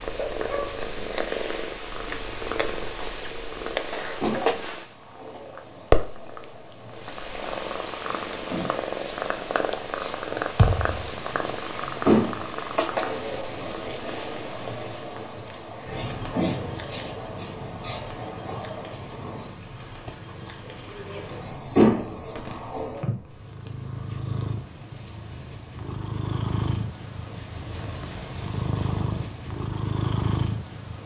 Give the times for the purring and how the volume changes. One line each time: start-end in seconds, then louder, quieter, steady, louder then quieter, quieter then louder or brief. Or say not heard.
0.0-31.0 quieter then louder.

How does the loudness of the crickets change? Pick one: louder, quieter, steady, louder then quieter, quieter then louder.
louder.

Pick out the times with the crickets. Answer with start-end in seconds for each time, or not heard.
0.0-23.1.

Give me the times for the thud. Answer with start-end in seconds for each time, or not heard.
10.6-11.1.